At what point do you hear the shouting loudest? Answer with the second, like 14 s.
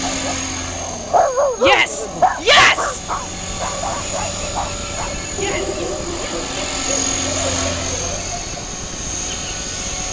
3 s.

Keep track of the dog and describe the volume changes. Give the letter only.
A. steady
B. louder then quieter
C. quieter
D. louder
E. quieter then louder
C.